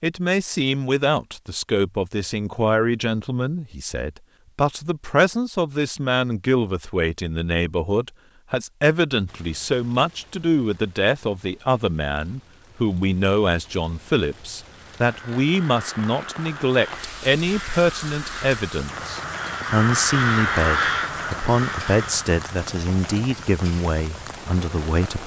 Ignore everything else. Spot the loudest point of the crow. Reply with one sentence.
The loudest moment of the crow is at 21 seconds.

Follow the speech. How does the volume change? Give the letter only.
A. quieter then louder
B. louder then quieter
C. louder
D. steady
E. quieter
D.